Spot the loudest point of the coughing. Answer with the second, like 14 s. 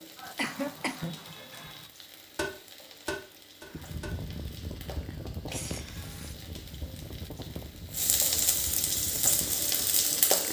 1 s.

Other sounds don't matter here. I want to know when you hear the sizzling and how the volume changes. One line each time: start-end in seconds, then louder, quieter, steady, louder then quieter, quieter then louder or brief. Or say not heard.
0.0-10.4 louder.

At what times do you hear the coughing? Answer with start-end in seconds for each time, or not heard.
0.1-1.9, 5.5-6.3.